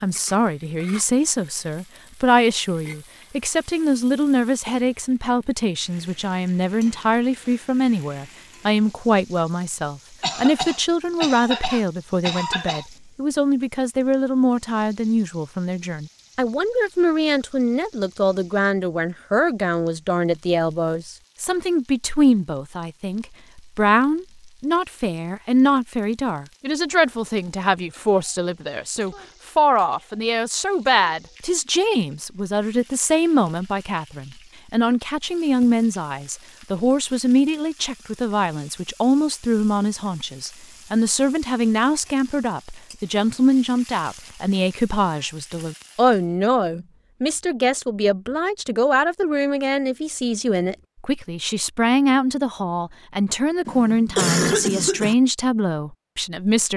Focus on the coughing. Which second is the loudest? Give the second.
54 s.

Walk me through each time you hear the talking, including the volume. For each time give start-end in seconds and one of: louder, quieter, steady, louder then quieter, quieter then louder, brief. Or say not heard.
0.0-56.7 steady.